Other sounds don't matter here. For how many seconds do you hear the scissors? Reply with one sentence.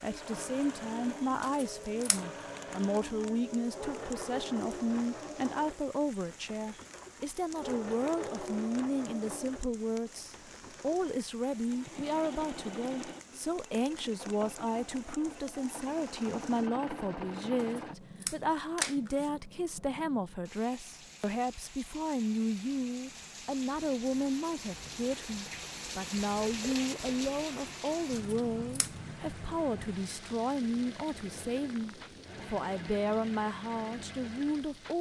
The scissors can be heard for 3 seconds in total.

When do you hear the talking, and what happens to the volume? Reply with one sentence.
The talking can be heard from 0.0 to 34.9 s, at a steady volume.